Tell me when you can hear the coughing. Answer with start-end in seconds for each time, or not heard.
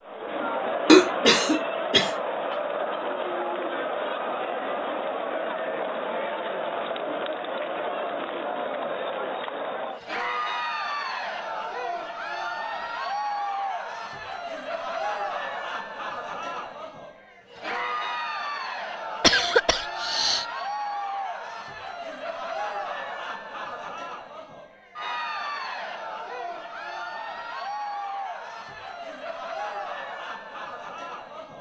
0.8-2.5, 19.2-20.4.